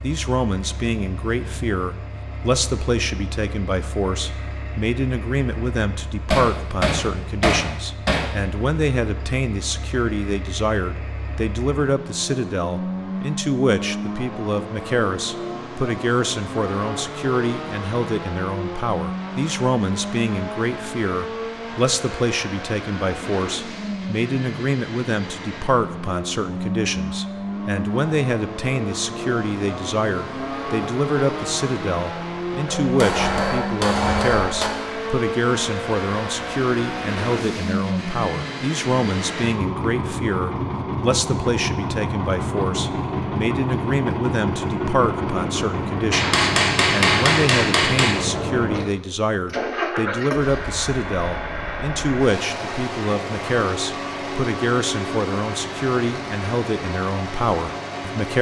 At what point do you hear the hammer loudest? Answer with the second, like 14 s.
47 s.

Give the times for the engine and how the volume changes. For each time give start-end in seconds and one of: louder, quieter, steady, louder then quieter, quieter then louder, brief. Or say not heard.
0.0-58.3 louder.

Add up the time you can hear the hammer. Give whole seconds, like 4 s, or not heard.
6 s.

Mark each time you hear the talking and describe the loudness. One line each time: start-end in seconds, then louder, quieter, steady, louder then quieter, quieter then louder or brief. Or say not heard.
0.0-58.3 steady.